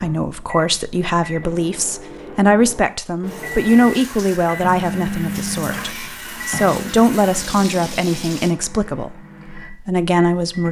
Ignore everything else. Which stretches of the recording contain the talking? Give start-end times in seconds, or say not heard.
0.0-10.6.